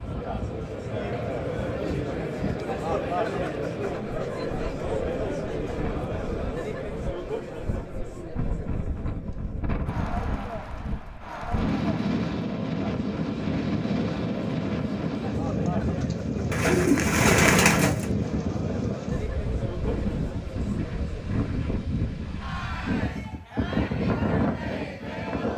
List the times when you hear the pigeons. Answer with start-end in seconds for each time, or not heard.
16.5-18.1.